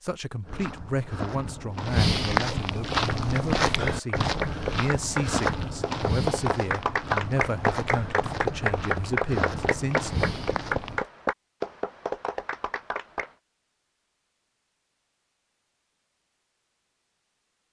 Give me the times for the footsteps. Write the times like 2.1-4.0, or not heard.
0.5-11.0.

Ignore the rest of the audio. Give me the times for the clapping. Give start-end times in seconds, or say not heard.
2.8-13.3.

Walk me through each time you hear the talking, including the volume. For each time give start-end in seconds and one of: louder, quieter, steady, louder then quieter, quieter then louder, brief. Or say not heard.
0.0-10.1 steady.